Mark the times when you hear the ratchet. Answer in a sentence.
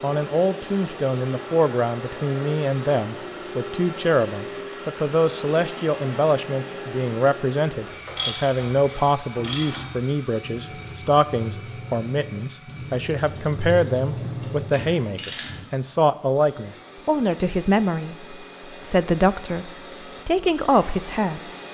You can hear the ratchet from 7.8 to 15.7 s.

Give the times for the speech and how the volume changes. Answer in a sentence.
You can hear the speech from 0.0 to 21.4 s, at a steady volume.